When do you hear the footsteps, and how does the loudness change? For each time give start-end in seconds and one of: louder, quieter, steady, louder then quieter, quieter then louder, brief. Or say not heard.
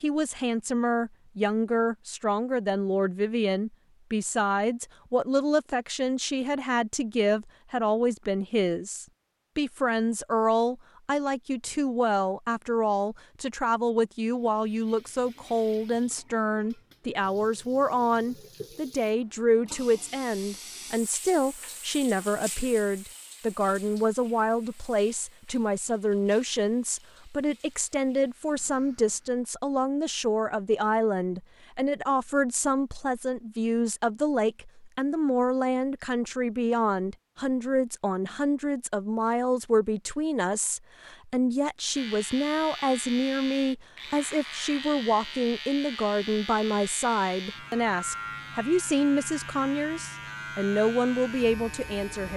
not heard.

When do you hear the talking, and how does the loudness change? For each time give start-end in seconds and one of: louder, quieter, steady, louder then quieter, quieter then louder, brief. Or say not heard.
0.0-52.3 steady.